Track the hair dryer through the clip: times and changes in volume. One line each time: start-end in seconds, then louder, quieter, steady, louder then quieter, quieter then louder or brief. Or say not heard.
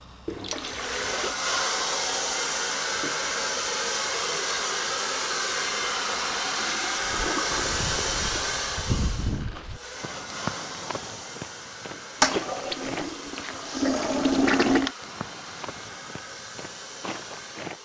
0.0-17.8 quieter.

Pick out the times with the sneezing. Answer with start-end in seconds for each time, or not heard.
not heard.